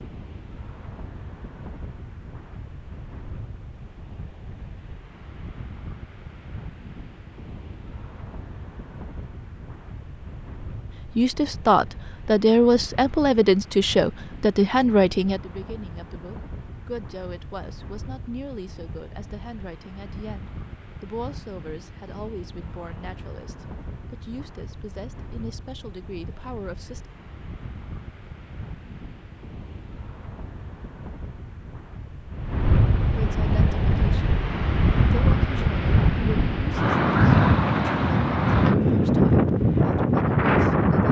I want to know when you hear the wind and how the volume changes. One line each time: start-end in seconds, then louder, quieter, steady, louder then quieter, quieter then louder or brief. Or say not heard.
0.0-41.0 louder.